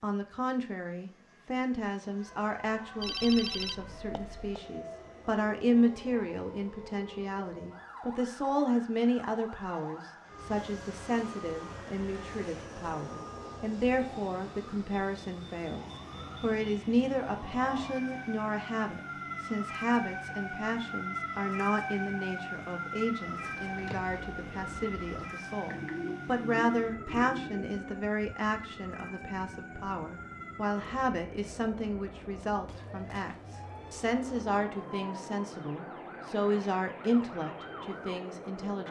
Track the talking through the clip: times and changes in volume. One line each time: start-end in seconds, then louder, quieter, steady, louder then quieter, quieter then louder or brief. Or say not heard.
0.0-38.8 steady.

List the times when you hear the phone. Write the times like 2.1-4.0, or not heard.
3.0-4.5.